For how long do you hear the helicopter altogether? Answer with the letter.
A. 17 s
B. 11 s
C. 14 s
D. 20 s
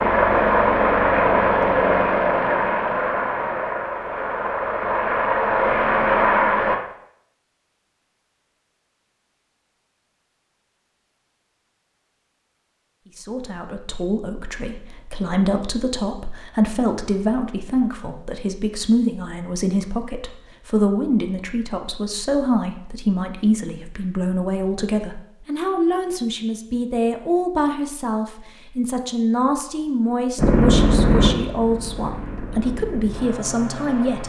B.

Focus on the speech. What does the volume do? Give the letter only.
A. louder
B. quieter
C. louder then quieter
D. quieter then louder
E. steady
E.